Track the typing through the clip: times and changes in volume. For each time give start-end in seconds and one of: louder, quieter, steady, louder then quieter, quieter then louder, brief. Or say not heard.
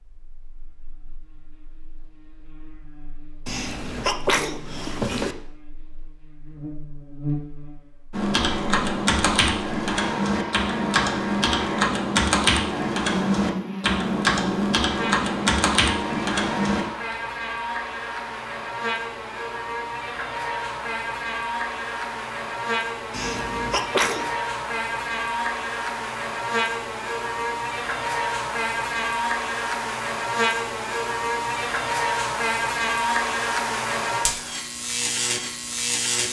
8.1-17.1 steady.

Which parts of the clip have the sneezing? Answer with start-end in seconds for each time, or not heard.
3.5-5.3, 23.1-24.3.